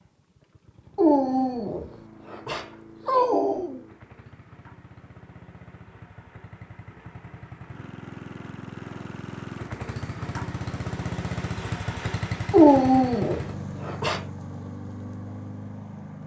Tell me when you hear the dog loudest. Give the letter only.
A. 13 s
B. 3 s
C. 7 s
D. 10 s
A.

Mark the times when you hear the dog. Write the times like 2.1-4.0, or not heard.
0.9-3.8, 12.5-14.2.